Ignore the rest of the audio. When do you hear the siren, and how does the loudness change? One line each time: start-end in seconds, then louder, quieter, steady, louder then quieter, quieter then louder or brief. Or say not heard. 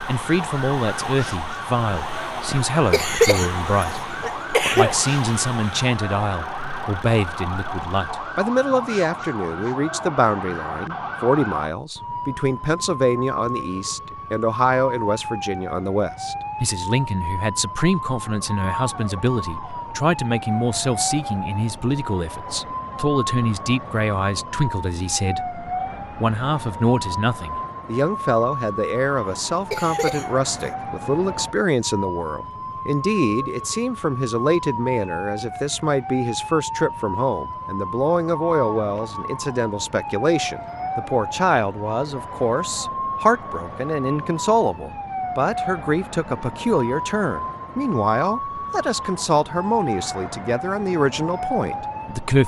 0.0-52.4 steady.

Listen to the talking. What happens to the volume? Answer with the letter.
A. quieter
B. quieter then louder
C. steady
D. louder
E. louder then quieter
C.